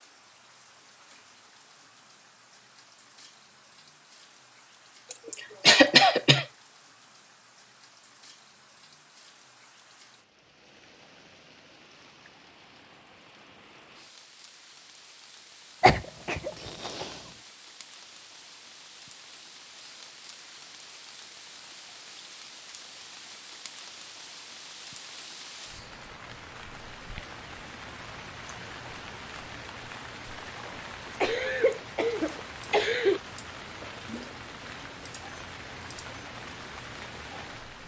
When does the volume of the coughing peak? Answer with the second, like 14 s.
6 s.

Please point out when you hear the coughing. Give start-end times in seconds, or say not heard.
5.1-6.5, 15.8-17.1, 31.2-33.2.